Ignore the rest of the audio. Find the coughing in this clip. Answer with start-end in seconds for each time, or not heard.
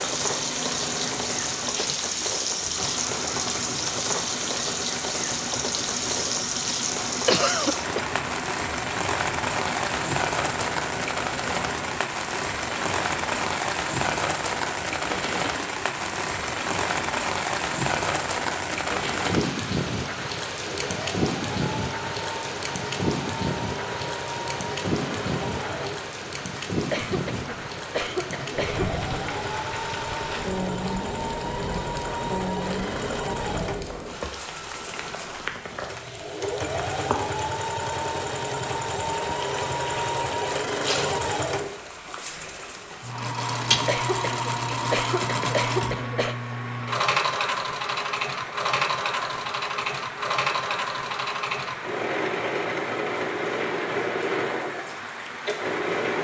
7.2-8.1, 26.9-28.9, 43.9-46.4.